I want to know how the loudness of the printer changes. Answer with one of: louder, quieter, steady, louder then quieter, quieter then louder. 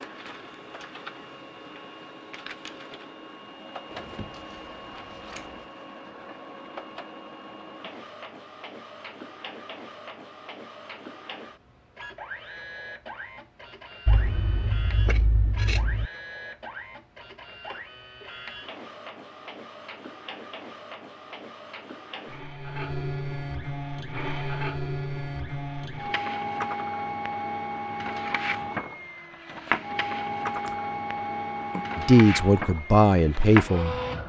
louder.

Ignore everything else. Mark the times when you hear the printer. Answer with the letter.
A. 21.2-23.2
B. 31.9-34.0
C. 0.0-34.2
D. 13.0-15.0
C.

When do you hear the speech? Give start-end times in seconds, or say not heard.
31.9-34.0.